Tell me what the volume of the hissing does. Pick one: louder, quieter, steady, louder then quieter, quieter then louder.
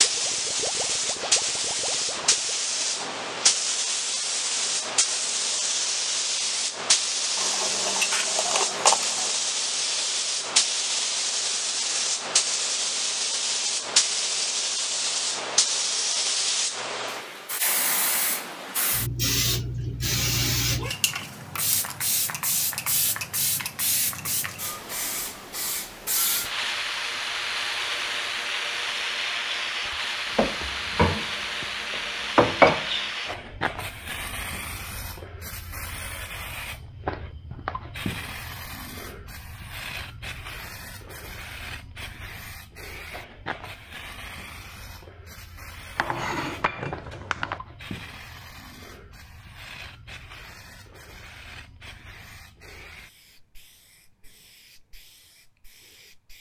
quieter.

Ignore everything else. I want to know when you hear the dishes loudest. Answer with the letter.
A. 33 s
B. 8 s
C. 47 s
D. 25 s
A.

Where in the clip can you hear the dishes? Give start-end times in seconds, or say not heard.
7.3-9.3, 30.2-33.1, 46.0-47.6.